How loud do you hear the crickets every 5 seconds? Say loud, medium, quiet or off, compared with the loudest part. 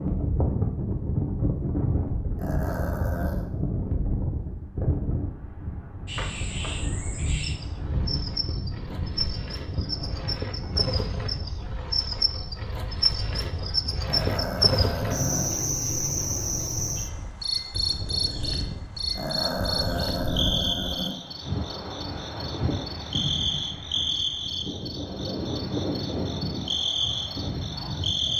off, medium, loud, loud, loud, loud.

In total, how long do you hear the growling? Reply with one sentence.
You can hear the growling for 5 seconds altogether.